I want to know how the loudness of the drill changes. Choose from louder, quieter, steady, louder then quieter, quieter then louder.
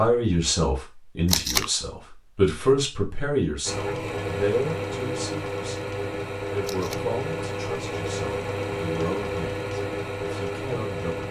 steady.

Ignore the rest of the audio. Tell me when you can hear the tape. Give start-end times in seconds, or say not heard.
1.2-1.7, 6.6-7.0.